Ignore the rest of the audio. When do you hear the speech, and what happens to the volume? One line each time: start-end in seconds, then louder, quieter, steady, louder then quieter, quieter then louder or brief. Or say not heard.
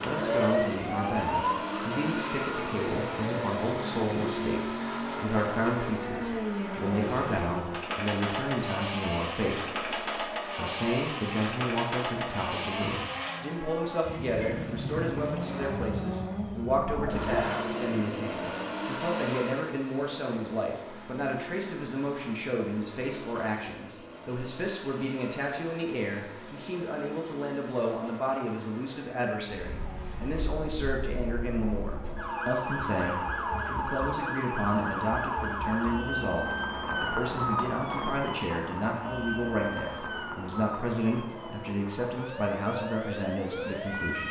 0.0-44.2 steady.